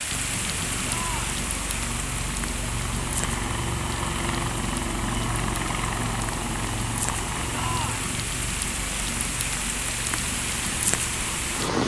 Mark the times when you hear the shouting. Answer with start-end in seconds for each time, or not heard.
0.8-1.4, 7.5-8.2.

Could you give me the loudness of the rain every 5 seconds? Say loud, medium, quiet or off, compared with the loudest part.
medium, medium, loud.